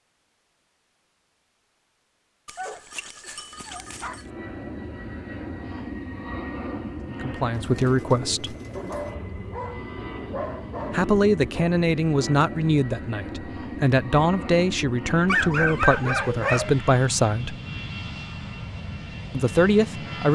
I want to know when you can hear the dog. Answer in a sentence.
You can hear the dog from 2.5 to 4.3 s, from 8.8 to 11.7 s and from 15.2 to 16.8 s.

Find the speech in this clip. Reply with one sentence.
You can hear the speech from 7.1 to 8.6 s, from 10.9 to 17.6 s and from 19.3 to 20.3 s.